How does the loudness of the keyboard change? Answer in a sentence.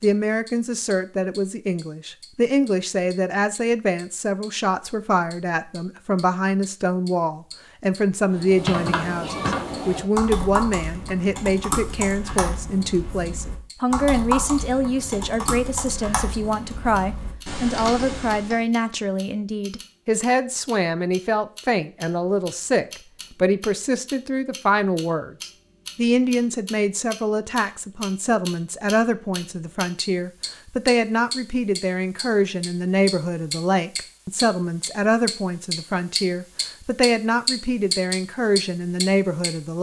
The volume of the keyboard goes down.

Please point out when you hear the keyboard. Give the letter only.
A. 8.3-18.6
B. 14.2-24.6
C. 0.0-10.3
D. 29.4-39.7
A.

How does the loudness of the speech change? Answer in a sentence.
The volume of the speech stays about the same.